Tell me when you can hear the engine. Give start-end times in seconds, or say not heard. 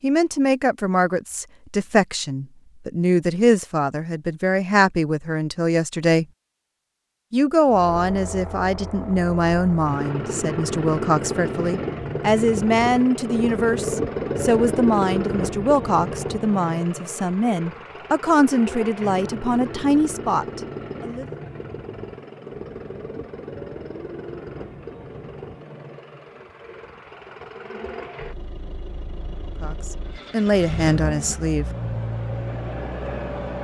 7.7-33.5.